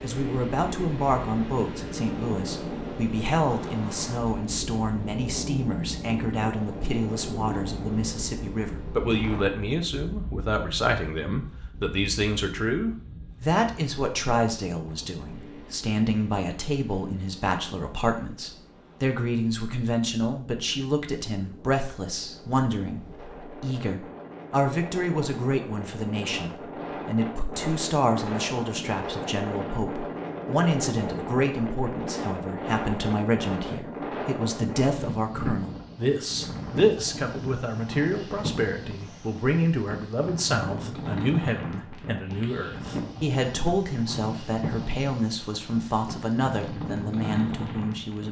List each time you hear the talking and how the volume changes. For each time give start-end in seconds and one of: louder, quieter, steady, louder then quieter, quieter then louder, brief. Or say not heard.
0.0-48.2 steady.